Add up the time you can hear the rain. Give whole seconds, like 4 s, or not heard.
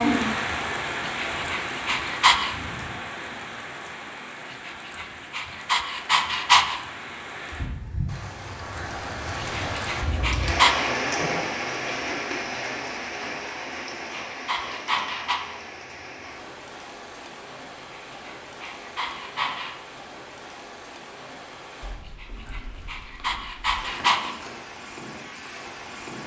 26 s.